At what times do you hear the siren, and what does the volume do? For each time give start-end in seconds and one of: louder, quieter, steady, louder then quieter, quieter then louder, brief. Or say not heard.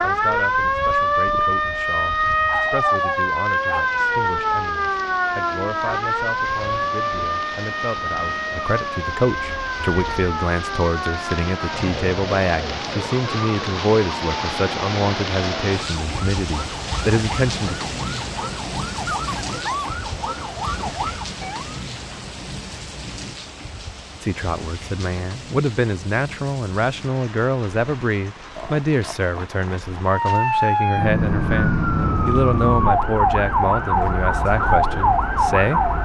0.0-21.8 quieter
30.1-36.0 steady.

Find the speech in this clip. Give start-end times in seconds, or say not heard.
0.0-17.9, 24.2-35.8.